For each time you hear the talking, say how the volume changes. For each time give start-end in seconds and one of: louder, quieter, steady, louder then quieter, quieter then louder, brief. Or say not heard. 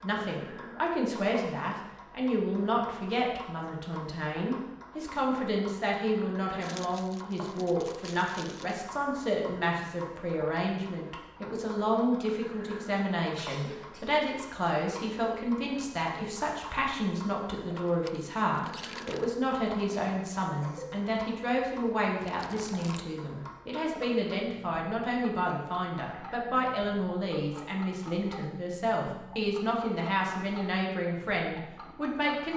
0.0-32.5 steady.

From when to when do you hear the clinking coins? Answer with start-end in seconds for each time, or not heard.
not heard.